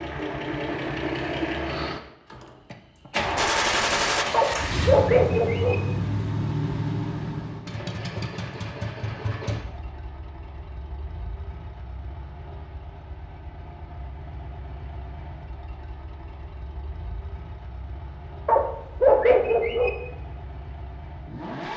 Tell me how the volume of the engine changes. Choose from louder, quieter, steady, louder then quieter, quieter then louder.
quieter.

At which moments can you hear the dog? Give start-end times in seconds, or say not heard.
4.3-5.8, 18.4-19.9.